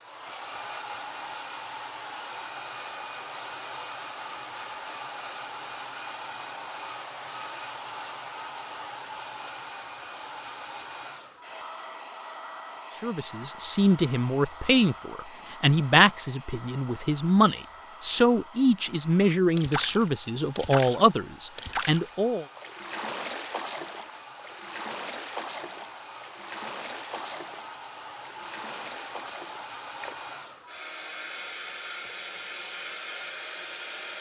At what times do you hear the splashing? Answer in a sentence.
The splashing can be heard from 19.6 to 30.1 s.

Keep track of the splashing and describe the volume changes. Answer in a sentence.
The volume of the splashing goes down.